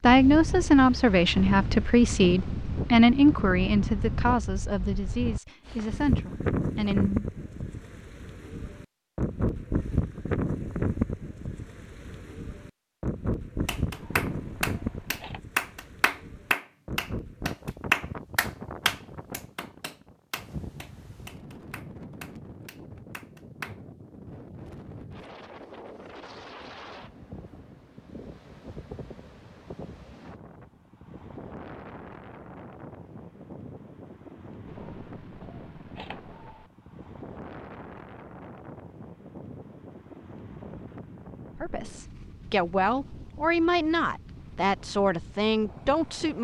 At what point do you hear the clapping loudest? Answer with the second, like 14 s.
18 s.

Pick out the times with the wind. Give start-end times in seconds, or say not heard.
0.0-46.3.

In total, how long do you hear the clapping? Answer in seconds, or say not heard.
10 s.